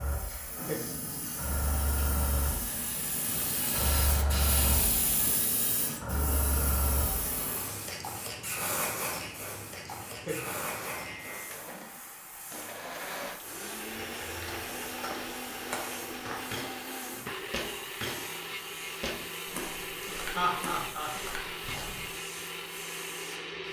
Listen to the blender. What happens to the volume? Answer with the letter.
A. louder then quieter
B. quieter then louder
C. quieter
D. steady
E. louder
D.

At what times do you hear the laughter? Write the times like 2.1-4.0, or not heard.
0.2-0.9, 9.8-10.6, 20.0-21.1.